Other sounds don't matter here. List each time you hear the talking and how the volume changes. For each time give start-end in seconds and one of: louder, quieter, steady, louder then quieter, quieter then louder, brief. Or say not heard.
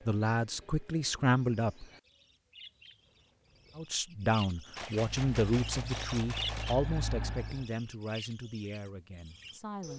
0.1-1.9 brief
3.8-9.9 quieter.